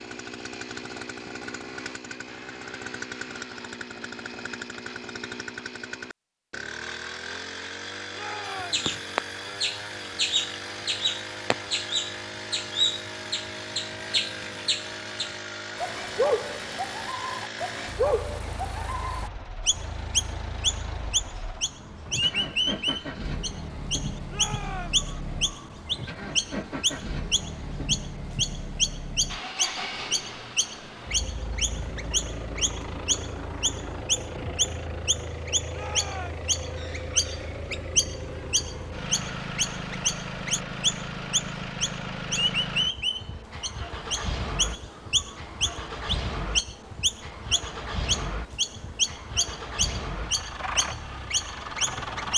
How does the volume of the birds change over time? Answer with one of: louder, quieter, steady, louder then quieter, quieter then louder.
steady.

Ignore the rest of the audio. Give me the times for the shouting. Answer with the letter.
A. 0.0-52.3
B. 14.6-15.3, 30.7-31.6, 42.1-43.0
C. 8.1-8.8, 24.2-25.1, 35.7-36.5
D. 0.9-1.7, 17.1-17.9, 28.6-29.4
C.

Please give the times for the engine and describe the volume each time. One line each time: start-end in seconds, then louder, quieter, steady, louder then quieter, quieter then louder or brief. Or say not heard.
0.0-52.3 steady.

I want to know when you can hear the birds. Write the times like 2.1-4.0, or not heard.
8.4-52.3.